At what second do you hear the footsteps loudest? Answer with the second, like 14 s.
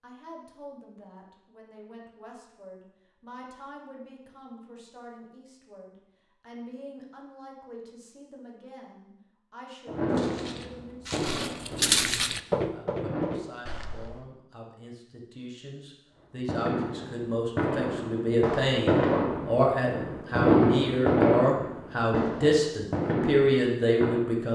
12 s.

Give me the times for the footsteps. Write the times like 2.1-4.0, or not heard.
10.1-14.2.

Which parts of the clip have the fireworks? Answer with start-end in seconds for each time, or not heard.
9.8-13.4, 16.4-24.2.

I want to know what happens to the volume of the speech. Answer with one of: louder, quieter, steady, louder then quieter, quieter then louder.
louder.